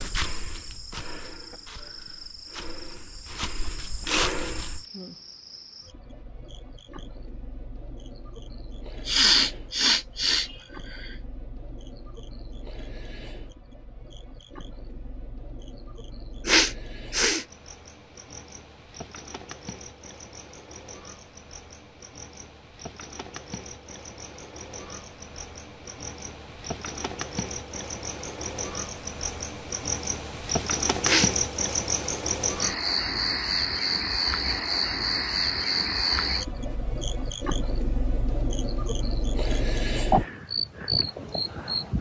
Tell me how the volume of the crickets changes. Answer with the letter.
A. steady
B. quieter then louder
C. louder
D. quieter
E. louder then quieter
C.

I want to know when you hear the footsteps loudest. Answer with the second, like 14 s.
4 s.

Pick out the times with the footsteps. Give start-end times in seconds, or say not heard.
0.0-4.8.